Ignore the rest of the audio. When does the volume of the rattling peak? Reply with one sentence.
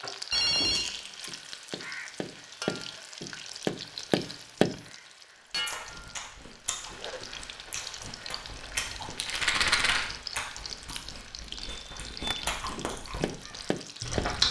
The loudest moment of the rattling is at 10 seconds.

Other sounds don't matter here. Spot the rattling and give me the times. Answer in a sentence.
You can hear the rattling from 0.6 to 1.4 s and from 9.2 to 10.1 s.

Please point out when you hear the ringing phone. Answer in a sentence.
The ringing phone can be heard from 0.3 to 0.8 s.